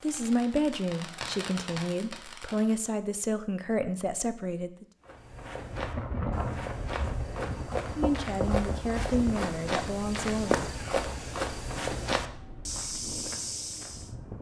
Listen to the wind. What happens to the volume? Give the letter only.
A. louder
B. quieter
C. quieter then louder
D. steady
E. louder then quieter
B.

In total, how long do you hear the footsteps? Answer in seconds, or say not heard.
9 s.